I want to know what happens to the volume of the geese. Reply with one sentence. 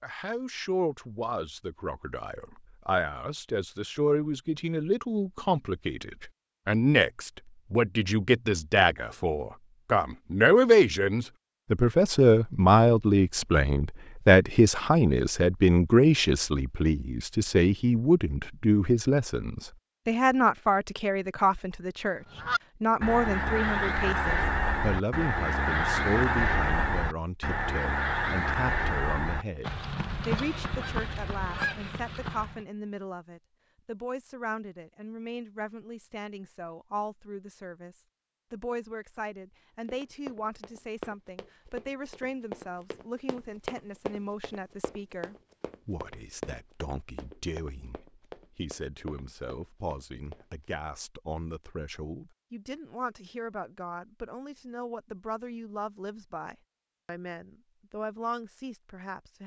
The volume of the geese goes down.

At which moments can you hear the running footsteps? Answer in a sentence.
The running footsteps can be heard from 39.9 to 50.6 s.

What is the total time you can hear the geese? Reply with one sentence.
The geese can be heard for 10 seconds in total.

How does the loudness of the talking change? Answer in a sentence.
The volume of the talking goes down.